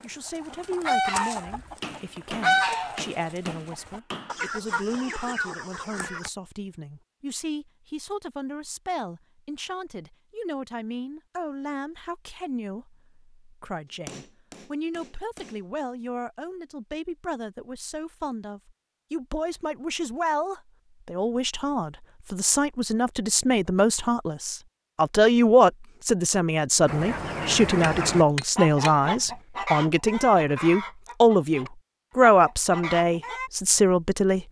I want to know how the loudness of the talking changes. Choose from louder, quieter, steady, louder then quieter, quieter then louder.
louder.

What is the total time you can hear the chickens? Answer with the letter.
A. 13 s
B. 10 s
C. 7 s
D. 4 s
A.